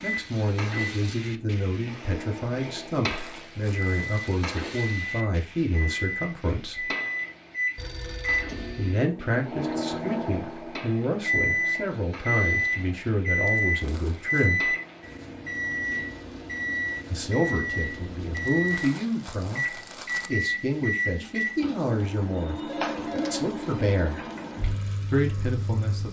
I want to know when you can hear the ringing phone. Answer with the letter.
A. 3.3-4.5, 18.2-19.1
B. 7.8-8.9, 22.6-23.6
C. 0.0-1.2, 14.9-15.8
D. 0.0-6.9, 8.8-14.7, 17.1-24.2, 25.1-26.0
B.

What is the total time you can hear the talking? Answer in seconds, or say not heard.
21 s.